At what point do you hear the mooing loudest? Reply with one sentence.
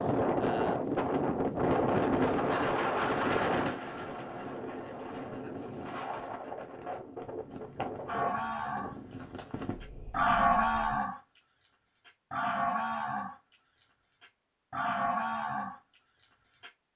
The volume of the mooing peaks at 10 seconds.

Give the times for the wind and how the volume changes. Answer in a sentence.
The wind can be heard from 0.0 to 11.1 s, getting quieter.